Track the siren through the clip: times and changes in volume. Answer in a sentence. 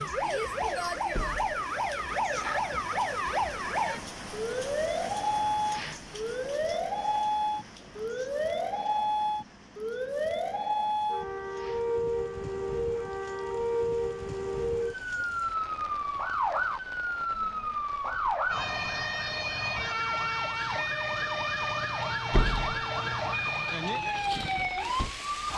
You can hear the siren from 0.0 to 25.5 s, at a steady volume.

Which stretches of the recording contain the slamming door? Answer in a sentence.
You can hear the slamming door from 1.1 to 1.6 s and from 22.3 to 22.8 s.